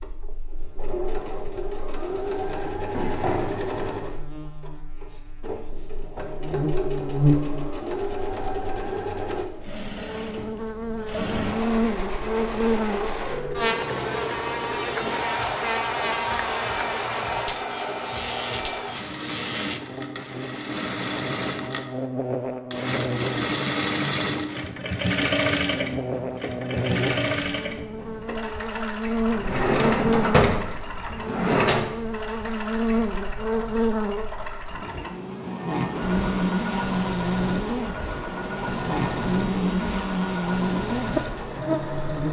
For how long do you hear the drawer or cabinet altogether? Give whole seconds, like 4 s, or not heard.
3 s.